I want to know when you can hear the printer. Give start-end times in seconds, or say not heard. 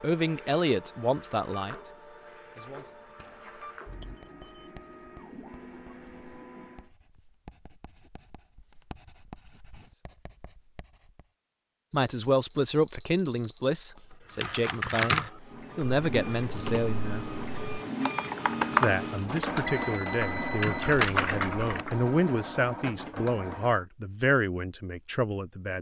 0.0-6.9, 15.3-23.9.